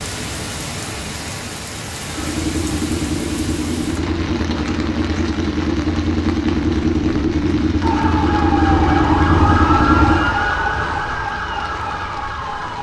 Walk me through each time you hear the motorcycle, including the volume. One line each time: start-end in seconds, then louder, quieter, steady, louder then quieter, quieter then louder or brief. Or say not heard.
2.0-10.3 louder.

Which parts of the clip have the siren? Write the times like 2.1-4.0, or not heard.
7.8-12.7.